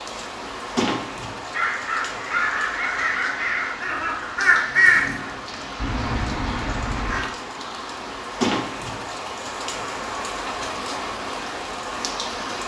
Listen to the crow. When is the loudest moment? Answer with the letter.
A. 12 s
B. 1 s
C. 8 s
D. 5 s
D.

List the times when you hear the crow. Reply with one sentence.
You can hear the crow from 1.5 to 7.2 s.